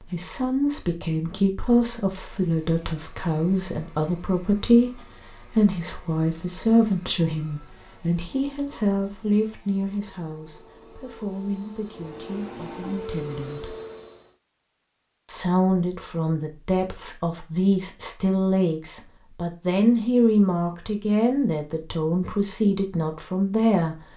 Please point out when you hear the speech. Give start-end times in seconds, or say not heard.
0.0-13.8, 15.2-23.9.